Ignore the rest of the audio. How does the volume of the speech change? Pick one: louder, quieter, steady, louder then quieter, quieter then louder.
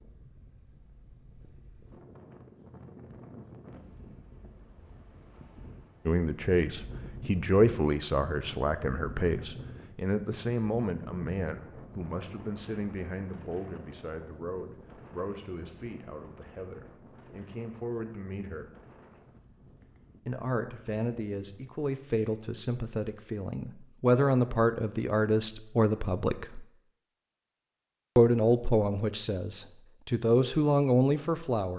quieter then louder.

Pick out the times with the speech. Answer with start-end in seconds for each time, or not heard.
6.0-18.7, 20.2-26.6, 28.1-31.7.